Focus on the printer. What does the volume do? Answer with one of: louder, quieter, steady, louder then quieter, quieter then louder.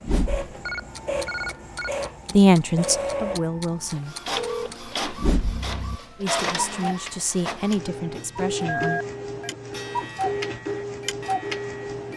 steady.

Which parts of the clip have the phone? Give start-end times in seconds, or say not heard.
0.7-1.9, 4.3-4.8, 8.7-9.5.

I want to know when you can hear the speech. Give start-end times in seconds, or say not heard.
2.3-4.2, 6.2-9.0.